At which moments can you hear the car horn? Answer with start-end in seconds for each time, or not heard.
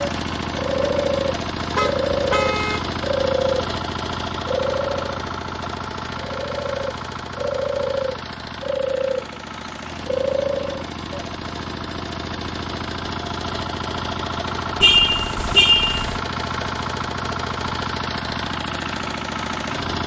1.7-2.9, 14.8-16.2.